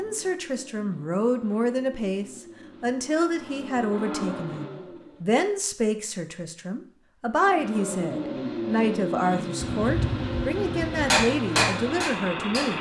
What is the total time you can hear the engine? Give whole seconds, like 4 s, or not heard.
11 s.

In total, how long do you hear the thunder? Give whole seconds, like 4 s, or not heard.
2 s.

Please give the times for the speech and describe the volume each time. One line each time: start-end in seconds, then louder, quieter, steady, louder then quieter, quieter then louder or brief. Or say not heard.
0.0-12.7 steady.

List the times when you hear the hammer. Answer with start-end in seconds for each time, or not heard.
11.1-12.7.